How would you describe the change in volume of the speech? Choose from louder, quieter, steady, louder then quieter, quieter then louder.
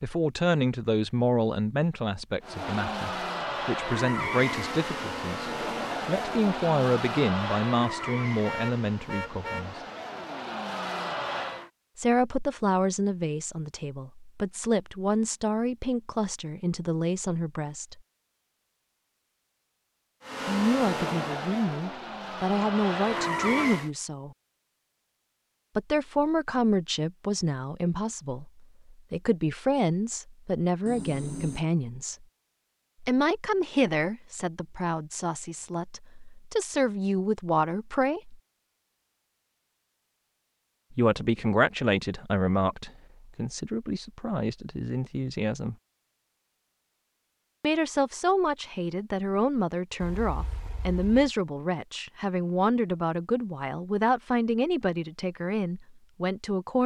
steady.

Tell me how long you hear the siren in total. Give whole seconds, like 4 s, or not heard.
not heard.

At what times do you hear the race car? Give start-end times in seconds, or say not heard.
2.4-11.7, 20.2-23.9.